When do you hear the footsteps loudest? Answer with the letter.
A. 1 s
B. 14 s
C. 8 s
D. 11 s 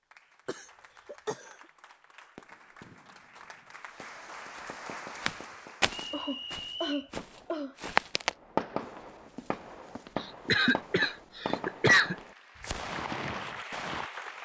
C.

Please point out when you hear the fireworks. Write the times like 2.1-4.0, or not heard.
2.4-14.1.